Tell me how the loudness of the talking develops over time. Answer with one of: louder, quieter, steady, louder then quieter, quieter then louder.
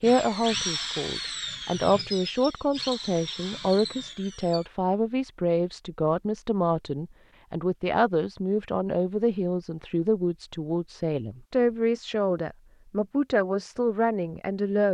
steady.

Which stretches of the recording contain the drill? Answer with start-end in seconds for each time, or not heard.
0.0-4.7.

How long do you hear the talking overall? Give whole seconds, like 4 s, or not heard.
15 s.